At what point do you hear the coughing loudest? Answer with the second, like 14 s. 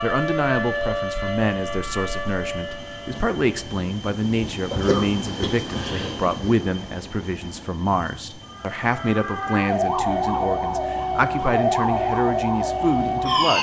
5 s.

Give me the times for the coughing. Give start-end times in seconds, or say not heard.
4.7-6.3.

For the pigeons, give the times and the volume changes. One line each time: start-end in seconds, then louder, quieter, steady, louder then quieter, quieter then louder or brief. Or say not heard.
not heard.